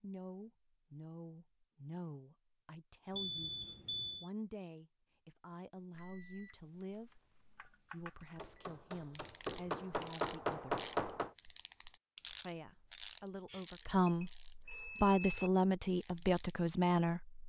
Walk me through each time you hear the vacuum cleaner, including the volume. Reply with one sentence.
You can't hear the vacuum cleaner here.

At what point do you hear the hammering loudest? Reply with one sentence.
The volume of the hammering peaks at 11 seconds.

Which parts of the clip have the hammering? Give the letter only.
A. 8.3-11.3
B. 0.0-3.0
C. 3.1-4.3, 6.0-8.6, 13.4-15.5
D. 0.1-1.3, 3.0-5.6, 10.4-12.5
A.